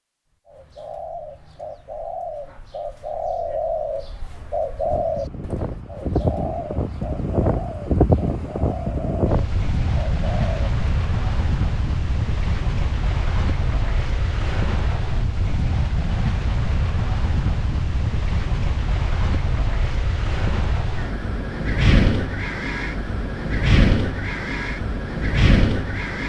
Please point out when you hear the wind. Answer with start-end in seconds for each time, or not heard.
4.8-26.2.